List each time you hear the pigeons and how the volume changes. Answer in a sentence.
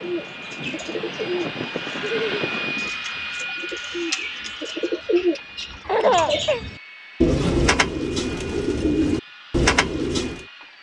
The pigeons can be heard from 0.0 to 10.4 s, getting louder.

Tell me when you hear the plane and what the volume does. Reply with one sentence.
You can hear the plane from 0.0 to 10.7 s, getting quieter.